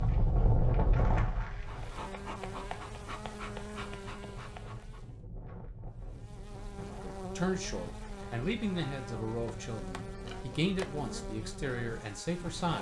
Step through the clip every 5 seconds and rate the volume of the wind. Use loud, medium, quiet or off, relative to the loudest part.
loud, quiet, medium.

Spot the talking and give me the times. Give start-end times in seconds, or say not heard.
7.2-12.7.